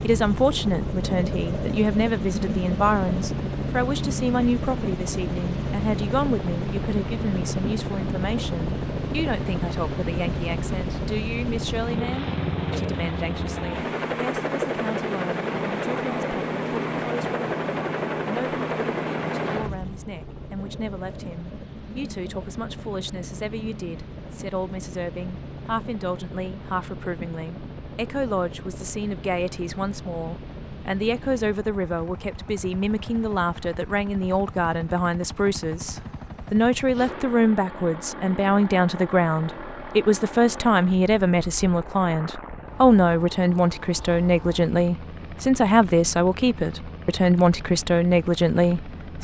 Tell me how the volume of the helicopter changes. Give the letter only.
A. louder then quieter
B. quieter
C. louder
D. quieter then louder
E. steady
B.